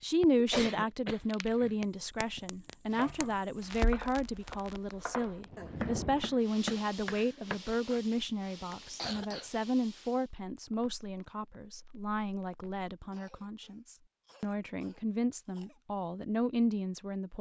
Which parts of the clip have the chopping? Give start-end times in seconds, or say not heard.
2.9-8.0.